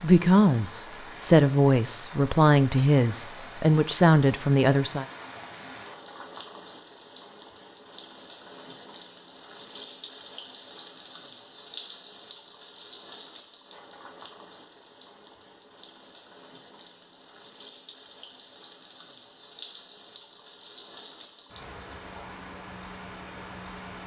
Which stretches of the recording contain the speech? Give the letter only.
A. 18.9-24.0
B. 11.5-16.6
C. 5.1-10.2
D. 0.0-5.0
D.